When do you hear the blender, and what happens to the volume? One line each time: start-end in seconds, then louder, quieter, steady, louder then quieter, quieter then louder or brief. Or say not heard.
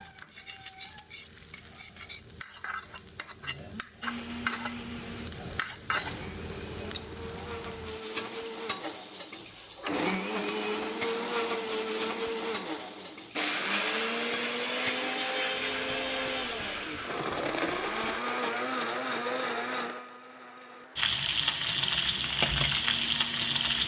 4.0-23.8 louder then quieter.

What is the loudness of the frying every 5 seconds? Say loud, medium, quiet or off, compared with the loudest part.
quiet, medium, quiet, quiet, loud.